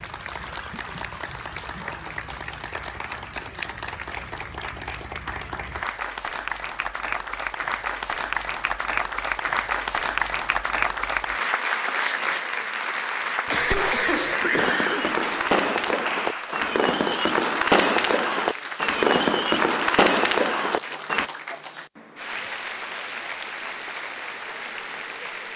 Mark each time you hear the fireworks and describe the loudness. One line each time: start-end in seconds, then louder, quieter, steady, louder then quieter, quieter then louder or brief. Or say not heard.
13.6-21.3 louder.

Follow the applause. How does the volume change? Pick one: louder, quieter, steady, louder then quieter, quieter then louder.
louder then quieter.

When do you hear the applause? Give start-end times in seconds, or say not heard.
0.0-25.5.